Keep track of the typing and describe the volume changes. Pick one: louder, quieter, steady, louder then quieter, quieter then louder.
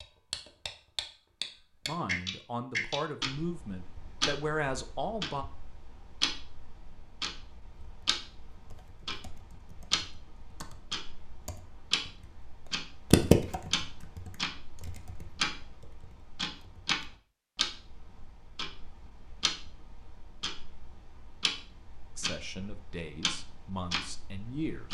louder then quieter.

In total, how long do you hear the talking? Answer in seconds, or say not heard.
6 s.